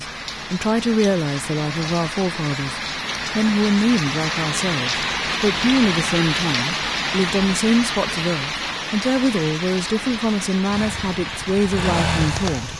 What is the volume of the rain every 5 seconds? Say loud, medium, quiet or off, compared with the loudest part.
loud, loud, medium.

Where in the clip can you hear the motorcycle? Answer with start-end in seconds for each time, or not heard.
10.7-12.7.